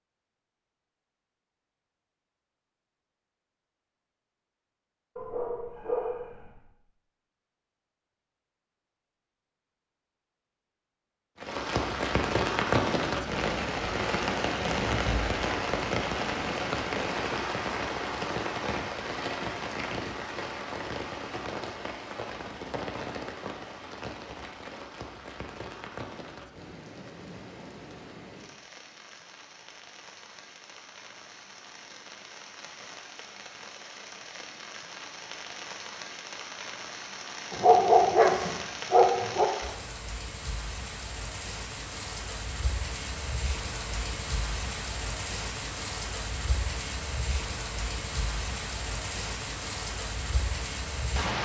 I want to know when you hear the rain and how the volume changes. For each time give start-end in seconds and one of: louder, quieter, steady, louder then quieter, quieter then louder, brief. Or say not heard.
11.3-51.3 quieter then louder.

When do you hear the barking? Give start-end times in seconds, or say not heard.
5.2-6.6, 37.5-39.5.